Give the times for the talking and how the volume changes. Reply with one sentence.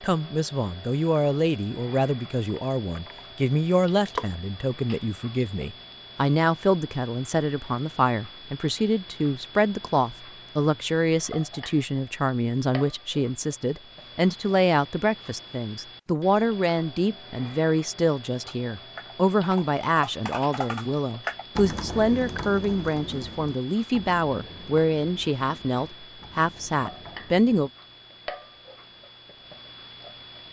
The talking can be heard from 0.0 to 27.7 s, at a steady volume.